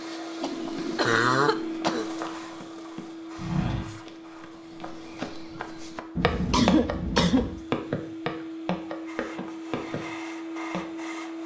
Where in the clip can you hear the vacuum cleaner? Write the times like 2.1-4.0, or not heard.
0.0-11.4.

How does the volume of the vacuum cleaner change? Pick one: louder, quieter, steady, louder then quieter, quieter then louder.
quieter then louder.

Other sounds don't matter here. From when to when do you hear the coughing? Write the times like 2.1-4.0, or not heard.
0.4-2.1, 6.2-7.6.